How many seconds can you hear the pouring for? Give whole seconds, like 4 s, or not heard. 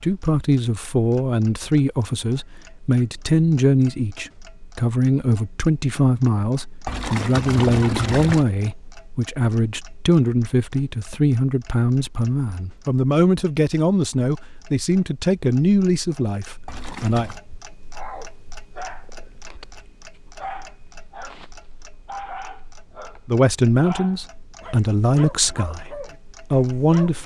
2 s.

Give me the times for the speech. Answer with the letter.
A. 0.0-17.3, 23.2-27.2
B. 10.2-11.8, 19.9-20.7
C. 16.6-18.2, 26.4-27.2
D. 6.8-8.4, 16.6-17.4
A.